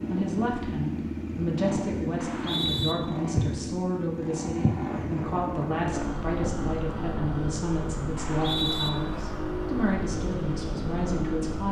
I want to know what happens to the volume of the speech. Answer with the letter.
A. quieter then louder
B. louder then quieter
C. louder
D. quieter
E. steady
E.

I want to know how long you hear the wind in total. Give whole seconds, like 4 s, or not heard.
7 s.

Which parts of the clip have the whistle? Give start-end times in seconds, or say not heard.
2.1-3.0, 8.2-8.9.